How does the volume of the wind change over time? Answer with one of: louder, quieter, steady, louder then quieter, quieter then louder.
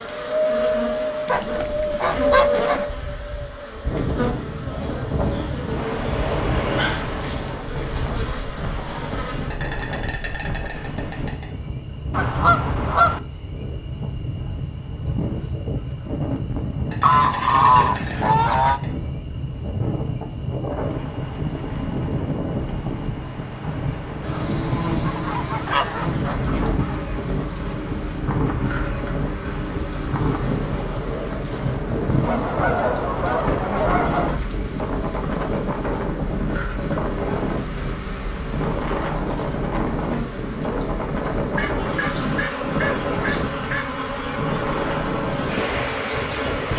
steady.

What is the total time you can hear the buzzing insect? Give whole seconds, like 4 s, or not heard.
47 s.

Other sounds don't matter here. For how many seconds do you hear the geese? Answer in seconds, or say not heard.
11 s.